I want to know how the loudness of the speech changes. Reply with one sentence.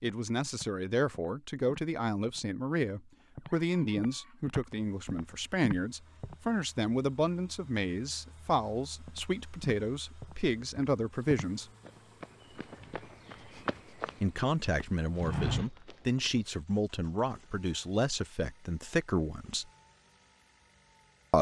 The volume of the speech stays about the same.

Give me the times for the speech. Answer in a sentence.
The speech can be heard from 0.0 to 11.7 s and from 14.2 to 19.6 s.